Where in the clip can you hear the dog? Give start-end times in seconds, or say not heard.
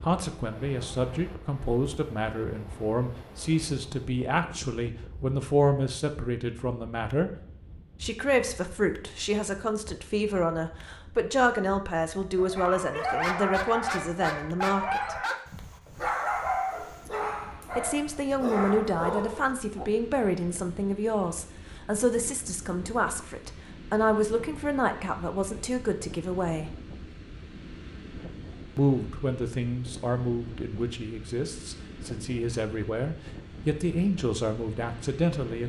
12.3-19.9.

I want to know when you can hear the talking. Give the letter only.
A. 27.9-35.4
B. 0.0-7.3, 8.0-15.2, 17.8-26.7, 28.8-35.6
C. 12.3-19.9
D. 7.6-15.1
B.